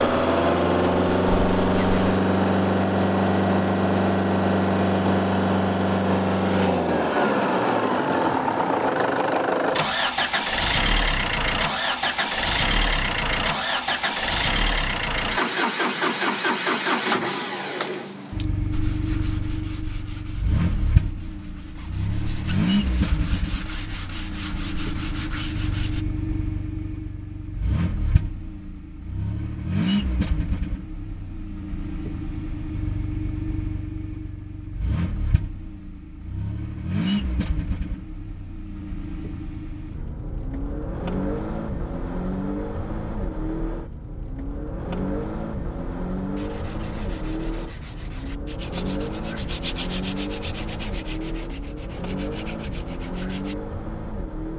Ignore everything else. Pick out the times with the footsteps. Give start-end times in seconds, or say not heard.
not heard.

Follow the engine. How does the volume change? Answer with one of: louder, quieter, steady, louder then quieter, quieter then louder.
quieter.